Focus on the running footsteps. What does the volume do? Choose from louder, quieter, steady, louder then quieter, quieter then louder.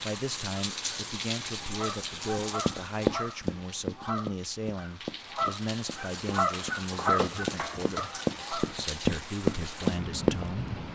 quieter then louder.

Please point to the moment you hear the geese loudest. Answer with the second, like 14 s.
7 s.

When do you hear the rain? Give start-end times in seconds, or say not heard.
0.0-10.9.